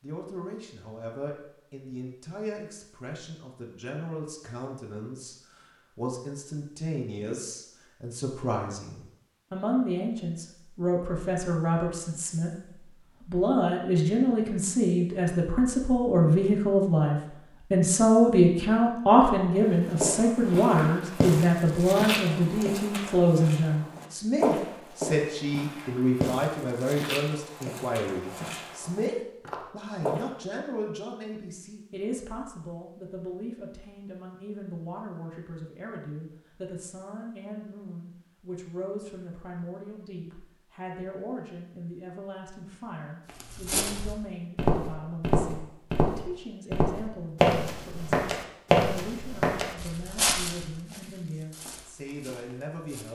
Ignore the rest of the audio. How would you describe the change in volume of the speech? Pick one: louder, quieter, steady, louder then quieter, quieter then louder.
louder then quieter.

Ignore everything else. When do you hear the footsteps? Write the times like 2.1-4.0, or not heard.
19.9-30.3, 43.2-53.1.